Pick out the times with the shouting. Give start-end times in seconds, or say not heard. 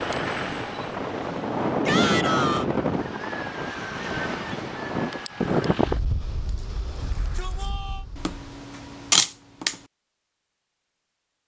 1.9-2.6, 7.0-8.1.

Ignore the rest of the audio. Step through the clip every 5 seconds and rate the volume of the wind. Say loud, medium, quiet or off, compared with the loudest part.
loud, loud, off.